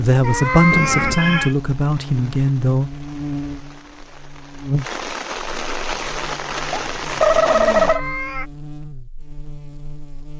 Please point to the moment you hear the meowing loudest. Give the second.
1 s.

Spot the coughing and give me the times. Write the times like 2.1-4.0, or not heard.
not heard.